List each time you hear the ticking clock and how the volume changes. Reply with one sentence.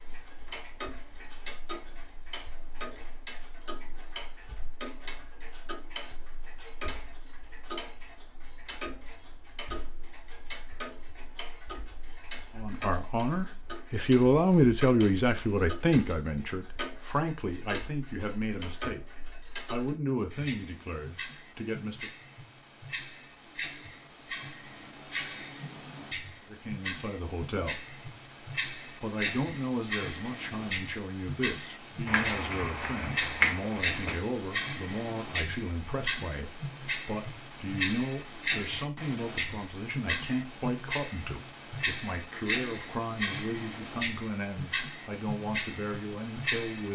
The ticking clock can be heard from 0.0 to 46.9 s, getting louder.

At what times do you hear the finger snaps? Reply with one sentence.
You can hear the finger snaps from 32.0 to 34.2 s.